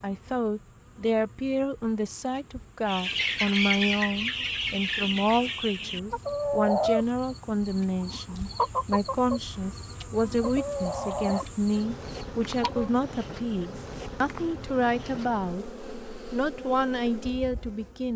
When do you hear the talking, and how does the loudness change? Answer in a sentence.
You can hear the talking from 0.0 to 15.7 s, at a steady volume; and briefly from 16.3 to 18.1 s.